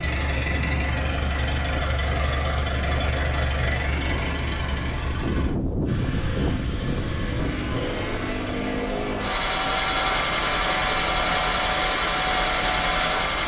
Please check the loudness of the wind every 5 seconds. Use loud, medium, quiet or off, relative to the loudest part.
medium, loud, medium.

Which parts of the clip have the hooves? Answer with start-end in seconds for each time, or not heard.
not heard.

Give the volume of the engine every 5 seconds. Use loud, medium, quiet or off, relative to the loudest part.
medium, medium, loud.